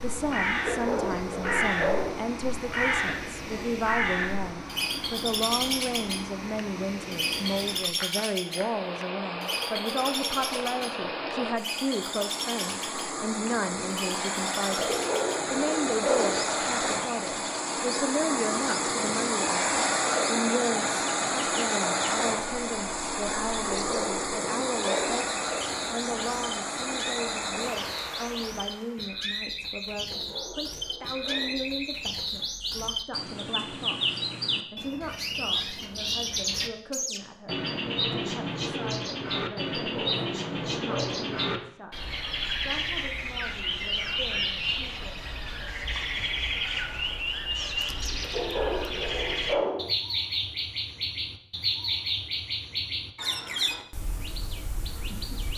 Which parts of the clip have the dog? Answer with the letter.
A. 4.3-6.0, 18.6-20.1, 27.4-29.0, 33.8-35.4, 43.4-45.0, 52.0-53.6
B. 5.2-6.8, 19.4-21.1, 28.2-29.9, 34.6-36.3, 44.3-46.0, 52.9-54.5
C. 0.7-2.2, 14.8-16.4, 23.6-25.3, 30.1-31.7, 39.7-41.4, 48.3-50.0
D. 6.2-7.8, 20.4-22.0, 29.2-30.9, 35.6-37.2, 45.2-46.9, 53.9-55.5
C.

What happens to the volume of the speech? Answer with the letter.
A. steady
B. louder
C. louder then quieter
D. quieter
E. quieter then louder
D.